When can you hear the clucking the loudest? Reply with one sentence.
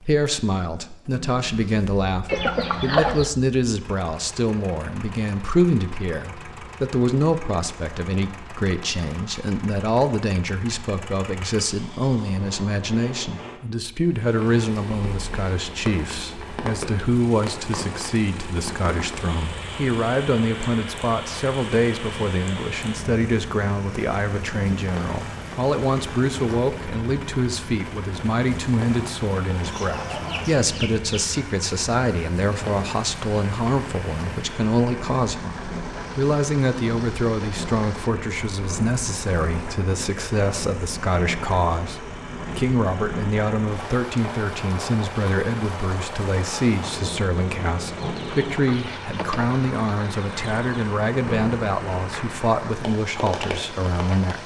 The loudest moment of the clucking is at 3 seconds.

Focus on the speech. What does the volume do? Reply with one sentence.
The loudness of the speech stays about the same.